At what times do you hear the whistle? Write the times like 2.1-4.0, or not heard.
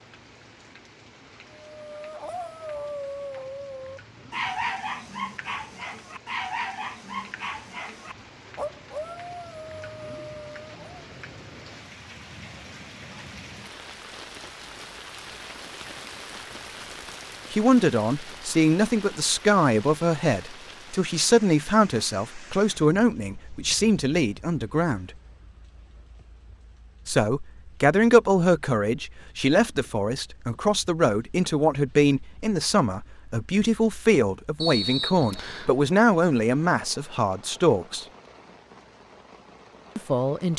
34.6-35.7.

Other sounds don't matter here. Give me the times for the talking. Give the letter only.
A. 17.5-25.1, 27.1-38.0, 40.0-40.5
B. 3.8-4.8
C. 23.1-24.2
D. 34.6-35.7
A.